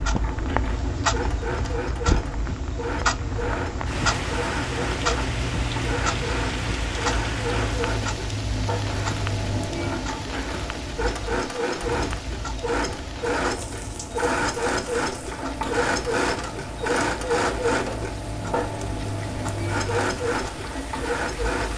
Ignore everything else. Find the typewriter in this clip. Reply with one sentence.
You can't hear the typewriter here.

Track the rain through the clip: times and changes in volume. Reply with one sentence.
You can hear the rain from 0.0 to 21.7 s, getting quieter.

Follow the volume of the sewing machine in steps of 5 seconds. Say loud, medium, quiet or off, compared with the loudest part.
medium, medium, loud, loud, loud.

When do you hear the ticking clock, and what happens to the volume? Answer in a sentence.
The ticking clock can be heard from 0.0 to 21.7 s, getting quieter.